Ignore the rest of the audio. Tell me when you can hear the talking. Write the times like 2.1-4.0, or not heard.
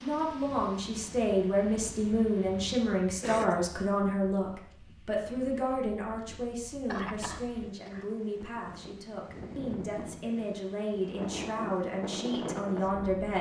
0.0-13.3.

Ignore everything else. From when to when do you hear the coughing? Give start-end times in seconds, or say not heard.
3.2-3.6, 6.8-8.1.